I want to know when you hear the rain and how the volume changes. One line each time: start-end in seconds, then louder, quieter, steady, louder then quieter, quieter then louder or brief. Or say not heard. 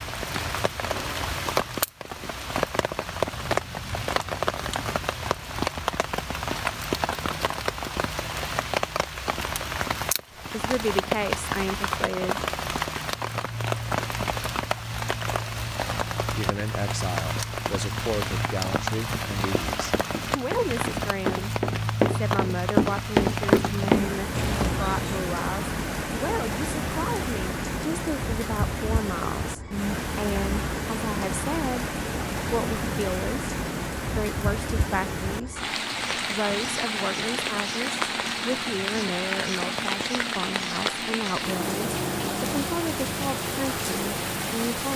0.0-44.9 steady.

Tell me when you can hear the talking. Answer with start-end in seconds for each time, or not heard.
10.5-12.4, 16.2-21.5, 22.1-44.9.